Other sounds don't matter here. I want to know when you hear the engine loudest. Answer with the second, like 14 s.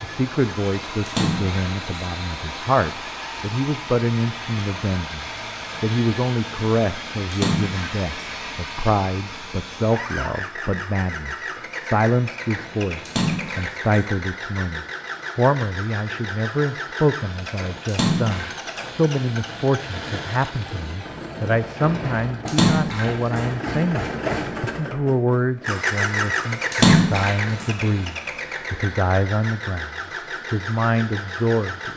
26 s.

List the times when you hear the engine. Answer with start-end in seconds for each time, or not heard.
0.0-31.9.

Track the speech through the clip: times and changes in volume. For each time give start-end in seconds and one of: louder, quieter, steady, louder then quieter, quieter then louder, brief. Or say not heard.
0.0-31.9 steady.